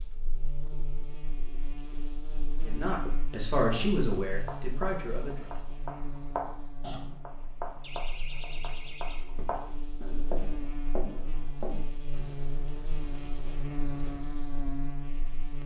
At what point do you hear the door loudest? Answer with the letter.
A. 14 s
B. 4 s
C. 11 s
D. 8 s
D.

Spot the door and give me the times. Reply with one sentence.
You can hear the door from 7.8 to 9.6 s.